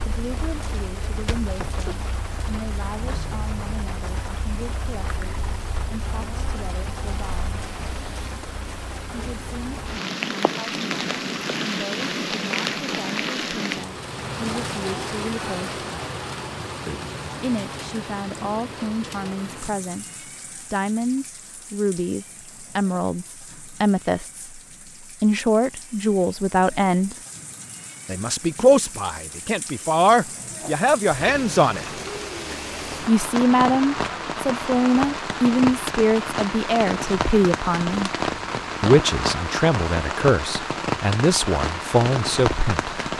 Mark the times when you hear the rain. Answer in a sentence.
You can hear the rain from 0.0 to 43.1 s.